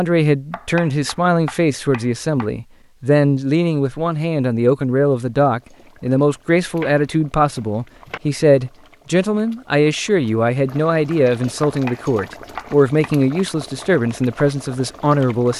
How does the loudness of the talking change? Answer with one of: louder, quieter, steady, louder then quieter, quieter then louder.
steady.